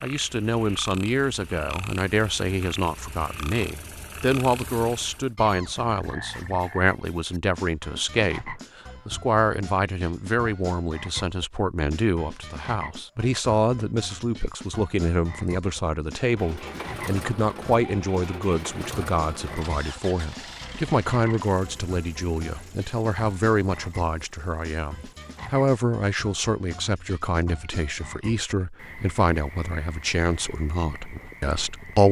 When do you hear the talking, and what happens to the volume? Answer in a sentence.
You can hear the talking from 0.0 to 32.0 s, at a steady volume.